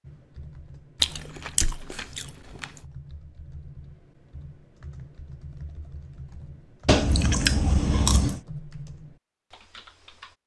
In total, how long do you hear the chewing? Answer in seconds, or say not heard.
3 s.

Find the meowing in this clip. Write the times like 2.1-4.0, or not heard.
not heard.